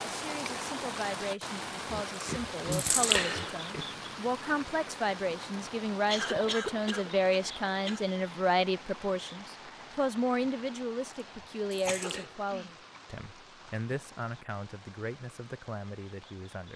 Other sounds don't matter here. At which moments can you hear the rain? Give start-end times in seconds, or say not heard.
0.0-16.7.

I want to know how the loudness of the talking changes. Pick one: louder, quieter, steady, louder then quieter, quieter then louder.
louder then quieter.